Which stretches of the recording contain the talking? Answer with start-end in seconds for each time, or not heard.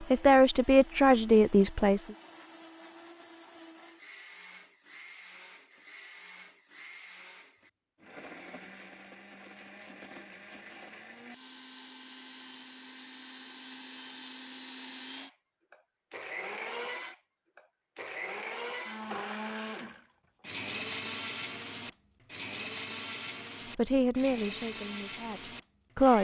0.0-2.1, 23.8-26.2.